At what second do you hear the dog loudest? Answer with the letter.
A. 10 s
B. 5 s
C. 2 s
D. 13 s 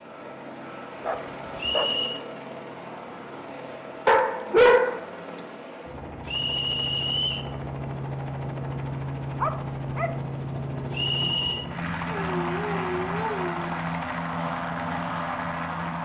B.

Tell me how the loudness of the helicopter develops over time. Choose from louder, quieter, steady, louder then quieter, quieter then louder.
louder.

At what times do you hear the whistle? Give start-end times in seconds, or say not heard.
1.6-2.2, 6.2-7.5, 10.9-11.7.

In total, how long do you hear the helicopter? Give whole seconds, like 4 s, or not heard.
16 s.